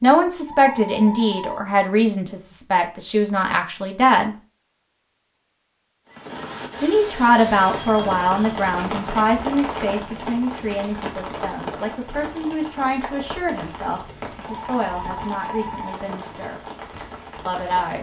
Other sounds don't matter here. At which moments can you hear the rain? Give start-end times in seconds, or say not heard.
6.0-17.9.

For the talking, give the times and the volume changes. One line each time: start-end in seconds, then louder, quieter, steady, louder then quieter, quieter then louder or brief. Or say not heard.
0.0-4.3 quieter
6.8-16.6 quieter
17.4-17.9 brief.